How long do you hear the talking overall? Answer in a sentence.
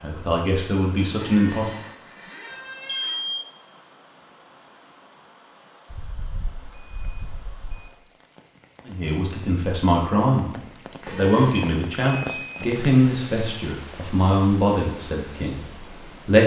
You can hear the talking for 9 seconds altogether.